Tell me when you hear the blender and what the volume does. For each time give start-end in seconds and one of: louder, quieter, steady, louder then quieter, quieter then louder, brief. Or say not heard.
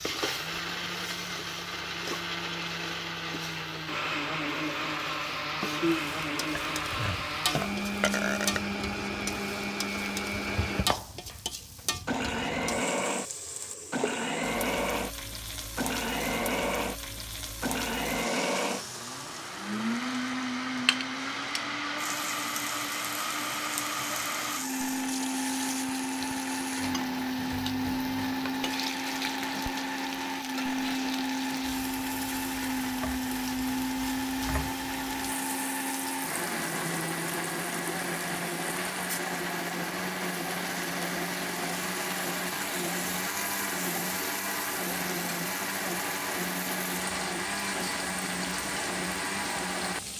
0.0-50.1 steady.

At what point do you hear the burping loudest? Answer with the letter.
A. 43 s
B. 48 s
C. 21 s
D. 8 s
D.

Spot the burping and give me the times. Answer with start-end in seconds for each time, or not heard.
6.5-8.6.